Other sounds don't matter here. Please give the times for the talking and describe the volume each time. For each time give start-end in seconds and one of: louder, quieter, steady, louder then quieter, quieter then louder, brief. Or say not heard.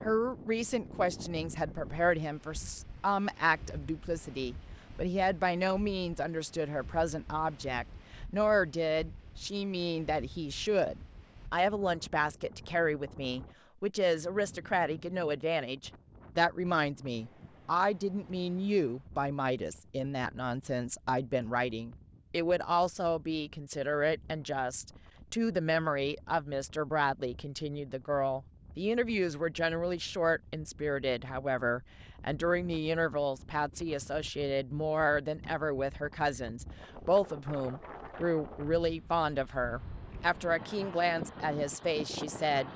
0.0-42.7 steady.